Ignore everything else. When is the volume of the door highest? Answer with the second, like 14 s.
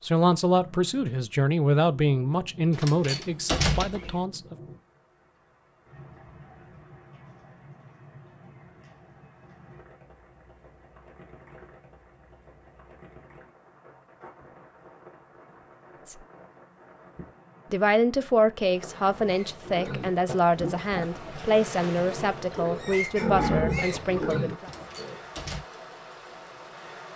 4 s.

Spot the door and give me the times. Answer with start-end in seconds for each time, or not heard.
2.7-4.2, 24.6-25.6.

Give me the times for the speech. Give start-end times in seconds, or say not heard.
0.0-4.5, 17.7-24.7.